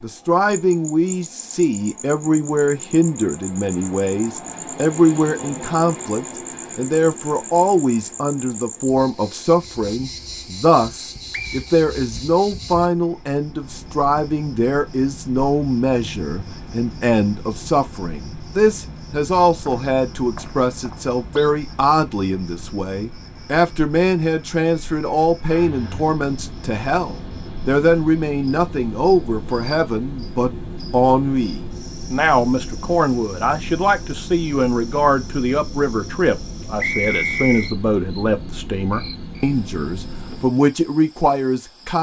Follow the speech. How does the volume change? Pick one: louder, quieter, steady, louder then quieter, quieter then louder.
steady.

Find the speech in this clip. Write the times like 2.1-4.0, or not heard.
0.0-41.9.